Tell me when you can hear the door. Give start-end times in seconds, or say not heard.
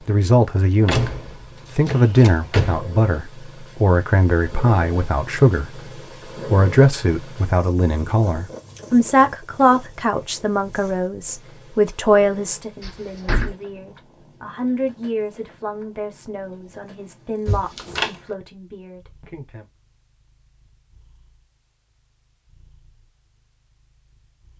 0.8-2.9, 12.8-13.6, 17.4-18.1.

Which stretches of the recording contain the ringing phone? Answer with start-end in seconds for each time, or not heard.
not heard.